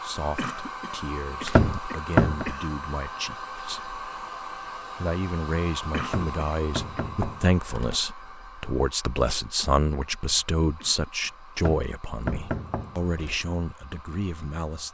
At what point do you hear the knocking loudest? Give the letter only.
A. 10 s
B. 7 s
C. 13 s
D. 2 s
D.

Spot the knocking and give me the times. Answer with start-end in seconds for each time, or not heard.
1.4-2.5, 6.0-8.0, 11.6-13.4.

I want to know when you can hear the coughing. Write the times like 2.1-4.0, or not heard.
0.3-2.8, 5.9-7.0, 10.8-11.4.